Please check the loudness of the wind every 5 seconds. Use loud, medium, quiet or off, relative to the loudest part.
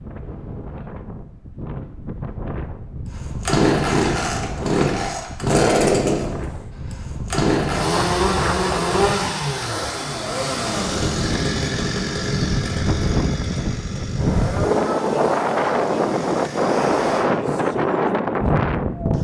quiet, medium, loud, loud.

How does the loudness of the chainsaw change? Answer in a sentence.
The loudness of the chainsaw goes down.